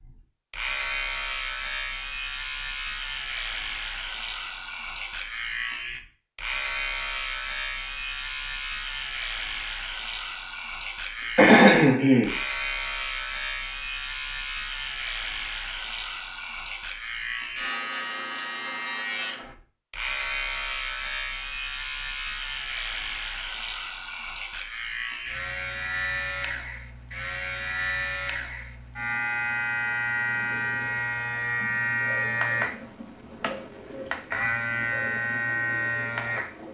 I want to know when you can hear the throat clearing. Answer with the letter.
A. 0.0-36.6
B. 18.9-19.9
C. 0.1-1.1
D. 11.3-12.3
D.